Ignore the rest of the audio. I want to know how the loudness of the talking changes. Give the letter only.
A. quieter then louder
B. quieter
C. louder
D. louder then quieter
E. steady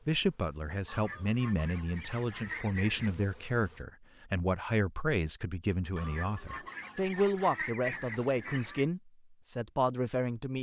E.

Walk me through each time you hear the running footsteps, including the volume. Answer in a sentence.
You can't hear the running footsteps here.